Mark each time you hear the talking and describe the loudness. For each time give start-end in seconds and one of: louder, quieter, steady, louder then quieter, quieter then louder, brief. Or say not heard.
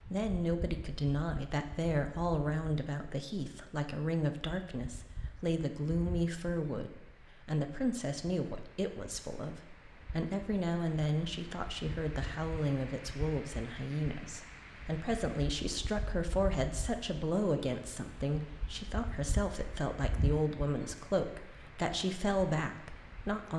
0.1-23.5 steady.